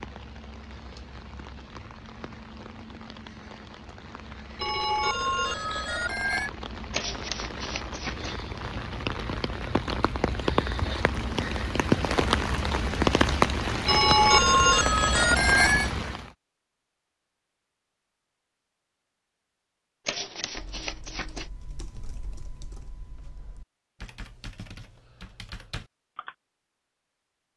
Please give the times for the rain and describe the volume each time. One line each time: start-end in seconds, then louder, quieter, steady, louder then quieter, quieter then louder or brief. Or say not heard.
0.0-16.3 louder.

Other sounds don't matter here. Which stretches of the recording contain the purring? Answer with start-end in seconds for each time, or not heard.
not heard.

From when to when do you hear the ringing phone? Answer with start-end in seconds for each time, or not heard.
4.5-6.5, 13.8-15.9.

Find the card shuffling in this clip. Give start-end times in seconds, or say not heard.
6.9-8.4, 20.1-21.5.